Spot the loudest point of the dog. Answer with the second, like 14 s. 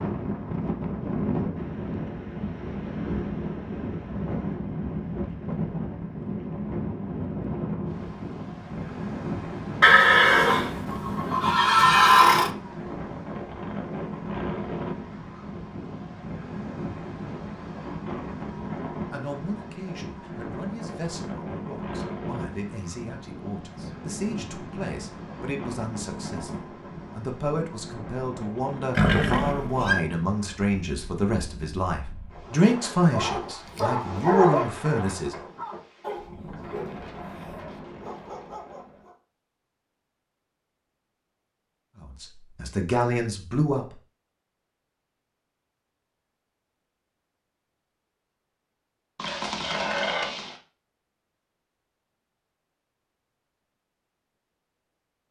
34 s.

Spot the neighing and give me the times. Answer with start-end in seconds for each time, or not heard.
9.8-12.5, 28.9-29.9, 49.1-50.5.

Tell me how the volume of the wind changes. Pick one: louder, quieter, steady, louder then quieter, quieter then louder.
quieter.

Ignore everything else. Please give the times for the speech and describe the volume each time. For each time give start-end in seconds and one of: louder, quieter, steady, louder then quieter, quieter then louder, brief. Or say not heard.
19.1-35.4 louder
42.0-44.0 brief.